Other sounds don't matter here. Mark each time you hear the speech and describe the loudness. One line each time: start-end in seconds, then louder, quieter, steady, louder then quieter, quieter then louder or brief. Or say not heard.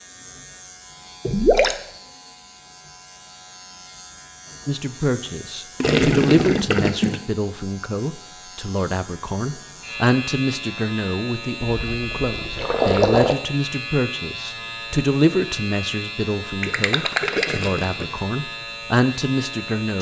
4.7-19.9 steady.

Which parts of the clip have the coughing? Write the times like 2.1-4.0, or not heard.
not heard.